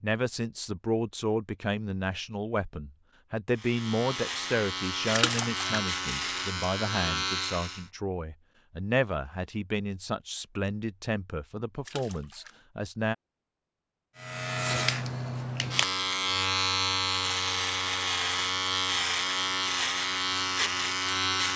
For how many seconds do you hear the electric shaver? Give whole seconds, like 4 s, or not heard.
12 s.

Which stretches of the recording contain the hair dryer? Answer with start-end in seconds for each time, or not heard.
not heard.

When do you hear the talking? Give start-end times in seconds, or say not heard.
0.0-13.2.